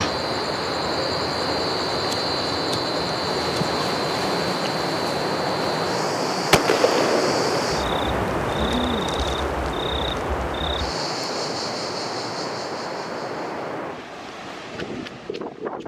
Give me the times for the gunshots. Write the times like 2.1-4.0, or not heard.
6.5-7.7.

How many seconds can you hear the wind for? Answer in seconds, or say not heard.
16 s.